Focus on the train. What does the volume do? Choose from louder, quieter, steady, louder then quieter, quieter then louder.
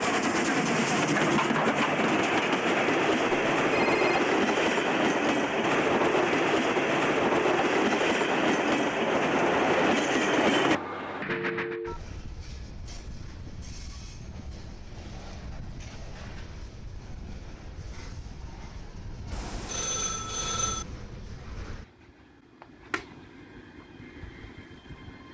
quieter.